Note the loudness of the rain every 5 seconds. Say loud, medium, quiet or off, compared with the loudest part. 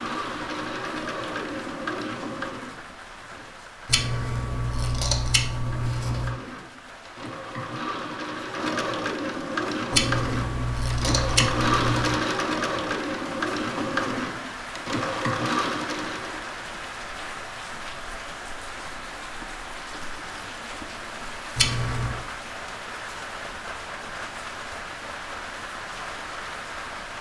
medium, medium, loud, loud, loud, loud.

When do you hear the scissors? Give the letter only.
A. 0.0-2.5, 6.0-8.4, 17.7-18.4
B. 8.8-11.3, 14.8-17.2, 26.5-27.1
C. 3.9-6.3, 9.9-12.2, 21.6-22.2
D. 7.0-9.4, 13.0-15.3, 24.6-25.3
C.